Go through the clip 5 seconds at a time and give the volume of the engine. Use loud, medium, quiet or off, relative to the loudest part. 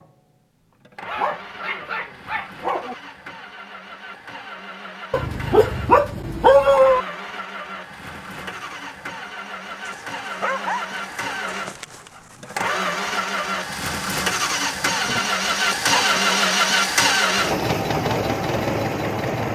quiet, quiet, medium, loud.